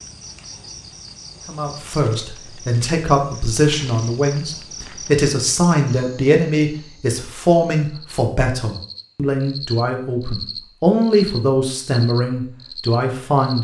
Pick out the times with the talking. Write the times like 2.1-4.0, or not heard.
1.4-13.5.